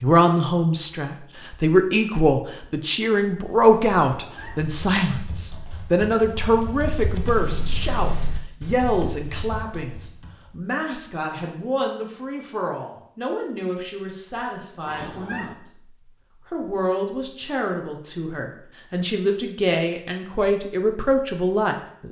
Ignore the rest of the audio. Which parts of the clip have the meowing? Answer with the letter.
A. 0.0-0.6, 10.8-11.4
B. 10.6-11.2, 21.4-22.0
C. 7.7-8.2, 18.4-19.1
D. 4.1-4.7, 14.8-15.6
D.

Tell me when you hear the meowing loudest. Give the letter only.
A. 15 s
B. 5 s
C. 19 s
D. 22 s
A.